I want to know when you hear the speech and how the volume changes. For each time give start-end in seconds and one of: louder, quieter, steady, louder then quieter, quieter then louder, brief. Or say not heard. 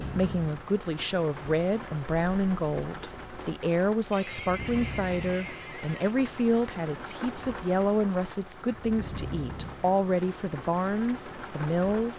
0.0-12.1 steady.